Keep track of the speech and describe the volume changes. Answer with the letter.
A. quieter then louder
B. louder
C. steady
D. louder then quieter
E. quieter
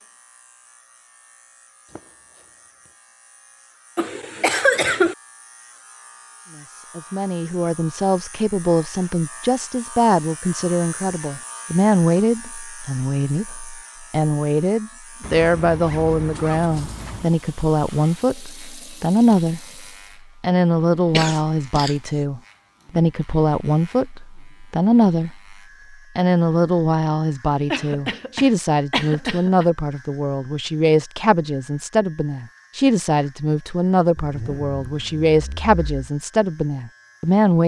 C.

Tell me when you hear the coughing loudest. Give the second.
5 s.